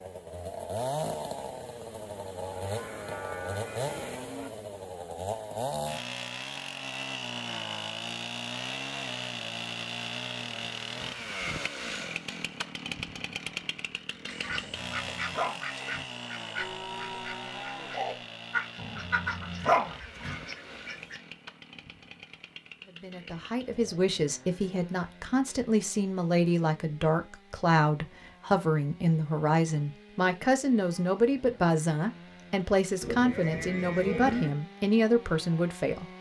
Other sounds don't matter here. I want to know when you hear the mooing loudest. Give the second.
34 s.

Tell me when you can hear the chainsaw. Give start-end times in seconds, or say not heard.
0.0-36.1.